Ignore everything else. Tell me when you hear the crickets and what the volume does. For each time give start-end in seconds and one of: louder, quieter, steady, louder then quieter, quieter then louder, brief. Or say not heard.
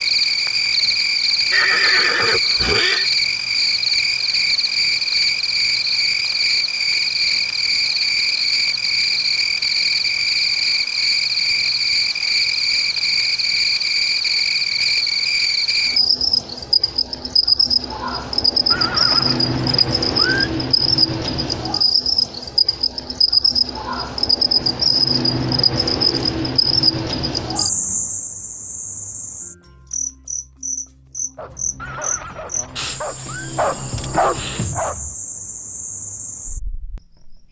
0.0-37.4 quieter.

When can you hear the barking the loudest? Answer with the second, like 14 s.
34 s.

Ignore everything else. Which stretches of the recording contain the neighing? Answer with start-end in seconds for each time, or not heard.
1.5-3.1, 18.7-20.5, 31.8-33.5.